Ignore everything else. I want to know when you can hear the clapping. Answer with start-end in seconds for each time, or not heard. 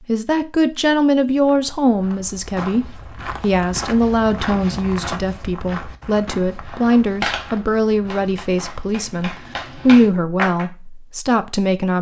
6.7-10.7.